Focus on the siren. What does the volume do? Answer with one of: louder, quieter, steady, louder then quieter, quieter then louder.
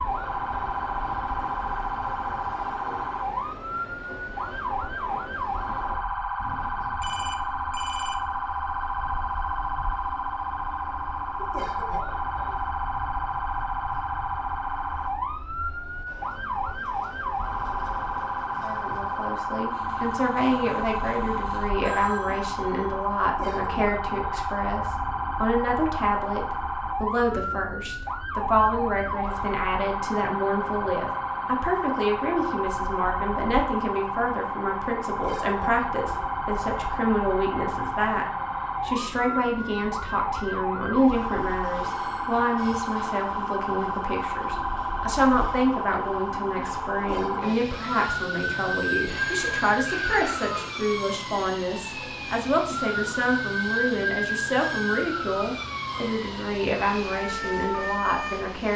steady.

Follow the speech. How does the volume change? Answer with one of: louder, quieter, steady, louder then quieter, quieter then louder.
steady.